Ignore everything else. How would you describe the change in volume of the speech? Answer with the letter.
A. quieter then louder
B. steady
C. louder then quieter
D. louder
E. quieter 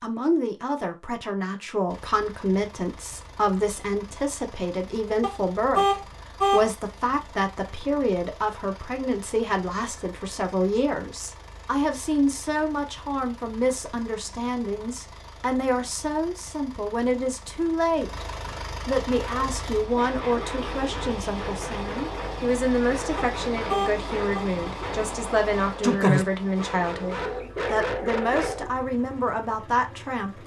B.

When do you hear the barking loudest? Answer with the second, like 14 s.
26 s.